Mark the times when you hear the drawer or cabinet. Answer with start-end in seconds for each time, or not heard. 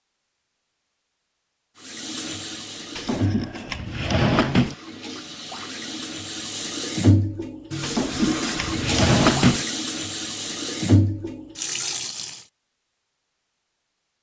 3.0-4.8, 7.8-9.7.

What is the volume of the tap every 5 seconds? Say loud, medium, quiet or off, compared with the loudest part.
medium, loud, loud.